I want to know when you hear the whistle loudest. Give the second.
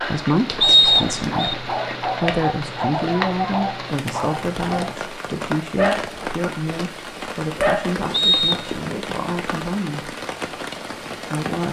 1 s.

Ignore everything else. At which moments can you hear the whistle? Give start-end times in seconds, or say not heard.
0.6-1.6, 8.1-8.7.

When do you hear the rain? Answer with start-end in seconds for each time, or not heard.
0.0-11.6.